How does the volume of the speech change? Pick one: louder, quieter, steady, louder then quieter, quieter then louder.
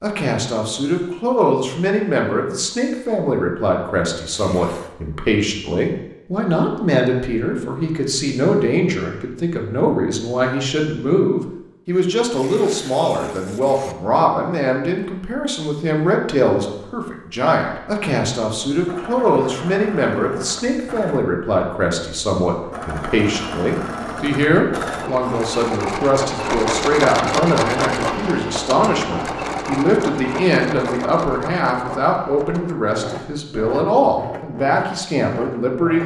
steady.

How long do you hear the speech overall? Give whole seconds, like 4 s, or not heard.
36 s.